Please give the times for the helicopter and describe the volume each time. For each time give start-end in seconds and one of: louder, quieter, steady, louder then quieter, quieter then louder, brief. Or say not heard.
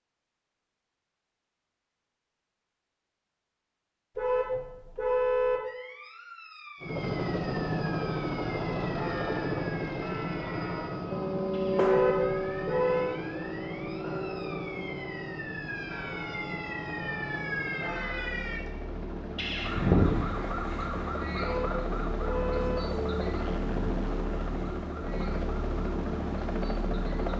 6.8-27.3 quieter then louder.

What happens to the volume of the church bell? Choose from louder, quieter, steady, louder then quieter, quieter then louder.
louder then quieter.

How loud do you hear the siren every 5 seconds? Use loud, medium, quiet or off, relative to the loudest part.
off, quiet, quiet, loud, loud, quiet.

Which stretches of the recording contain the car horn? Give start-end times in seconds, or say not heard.
4.2-5.6, 11.8-13.2, 21.4-22.8.